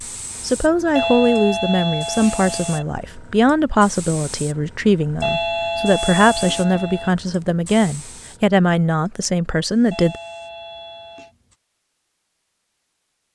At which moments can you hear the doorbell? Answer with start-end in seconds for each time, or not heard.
0.9-2.9, 5.2-7.1, 9.9-11.3.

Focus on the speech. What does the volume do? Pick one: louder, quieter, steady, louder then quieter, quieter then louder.
steady.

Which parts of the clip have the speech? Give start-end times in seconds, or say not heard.
0.4-10.2.